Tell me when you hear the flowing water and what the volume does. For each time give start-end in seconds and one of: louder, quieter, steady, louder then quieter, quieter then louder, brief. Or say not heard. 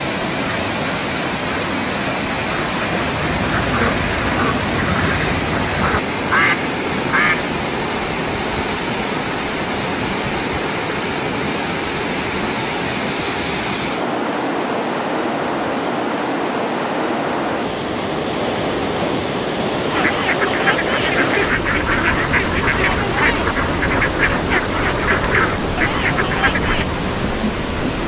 0.0-28.0 steady.